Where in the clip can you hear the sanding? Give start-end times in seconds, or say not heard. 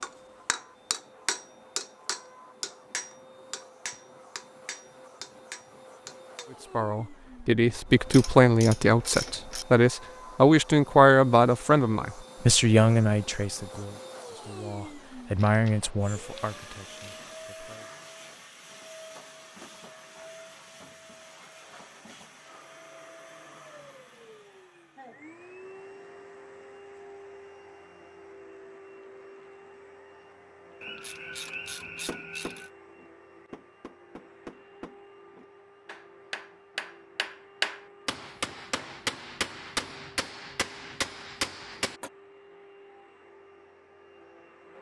not heard.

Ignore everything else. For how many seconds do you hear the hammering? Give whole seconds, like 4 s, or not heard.
17 s.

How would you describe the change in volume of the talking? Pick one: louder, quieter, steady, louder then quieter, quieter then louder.
quieter then louder.